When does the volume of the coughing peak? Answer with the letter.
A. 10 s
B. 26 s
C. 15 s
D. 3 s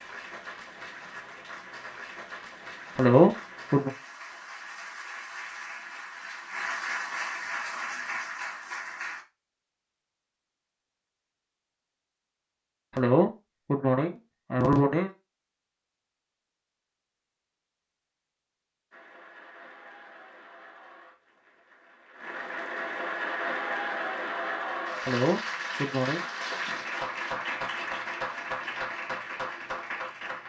D.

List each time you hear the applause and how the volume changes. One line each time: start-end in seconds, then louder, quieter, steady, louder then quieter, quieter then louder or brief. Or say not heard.
0.0-9.2 louder
18.9-30.4 louder.